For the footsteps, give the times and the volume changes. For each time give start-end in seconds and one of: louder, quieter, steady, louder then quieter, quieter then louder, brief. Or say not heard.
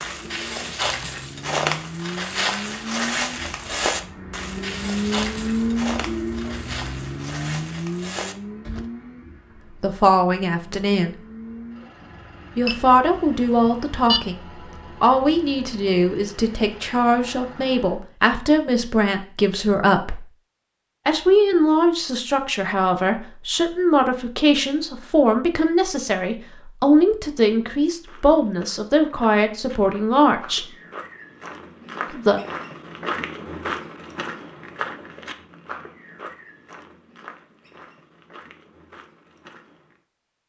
0.0-8.8 quieter
27.9-40.0 louder then quieter.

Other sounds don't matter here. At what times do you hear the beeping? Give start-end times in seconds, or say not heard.
12.7-14.2.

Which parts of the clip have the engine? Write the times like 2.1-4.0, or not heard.
0.0-18.1.